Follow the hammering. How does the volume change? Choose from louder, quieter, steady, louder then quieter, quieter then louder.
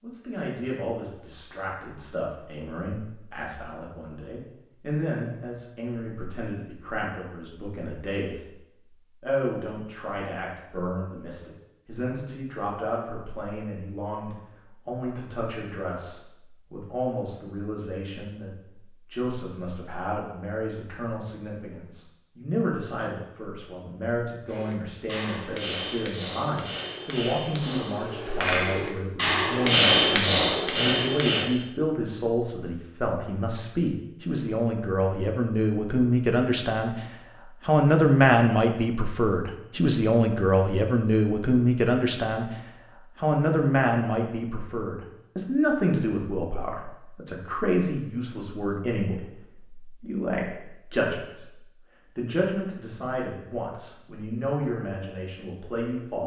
louder.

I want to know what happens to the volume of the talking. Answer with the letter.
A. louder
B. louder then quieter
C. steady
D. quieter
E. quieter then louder
B.